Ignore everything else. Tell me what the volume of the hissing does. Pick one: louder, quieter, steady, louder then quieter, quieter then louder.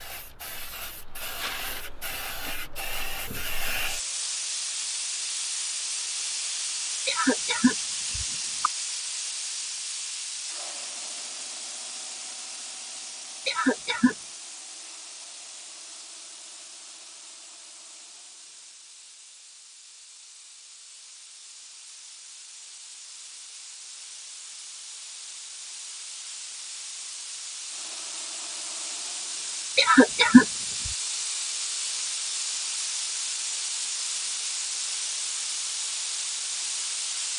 quieter then louder.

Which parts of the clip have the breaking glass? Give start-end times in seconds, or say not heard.
not heard.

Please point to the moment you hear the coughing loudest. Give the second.
30 s.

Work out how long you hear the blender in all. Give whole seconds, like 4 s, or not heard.
not heard.